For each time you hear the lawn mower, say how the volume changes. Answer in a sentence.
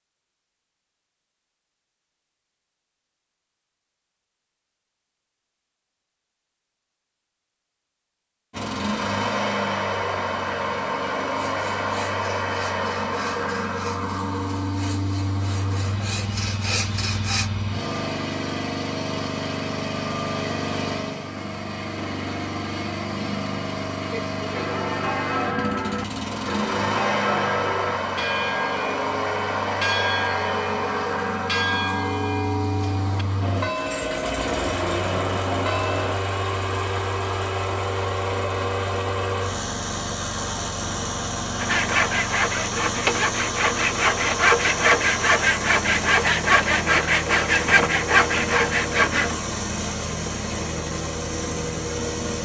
The lawn mower can be heard from 8.5 to 52.4 s, at a steady volume.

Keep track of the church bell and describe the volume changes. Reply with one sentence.
The loudness of the church bell stays about the same.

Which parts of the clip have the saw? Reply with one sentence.
The saw can be heard from 11.4 to 17.5 s and from 41.6 to 49.4 s.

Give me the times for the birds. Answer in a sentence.
You can't hear the birds here.